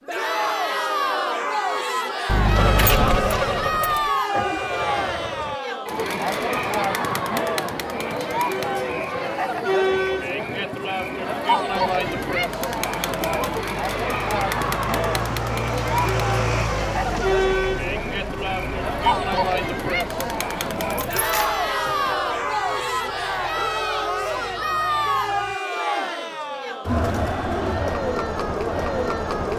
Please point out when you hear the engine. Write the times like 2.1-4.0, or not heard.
2.5-5.6, 11.9-25.6.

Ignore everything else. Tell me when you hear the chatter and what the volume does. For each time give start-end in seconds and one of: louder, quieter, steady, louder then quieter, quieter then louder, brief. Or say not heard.
0.1-29.5 steady.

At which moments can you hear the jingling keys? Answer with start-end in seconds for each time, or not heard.
2.2-4.1, 20.5-22.1.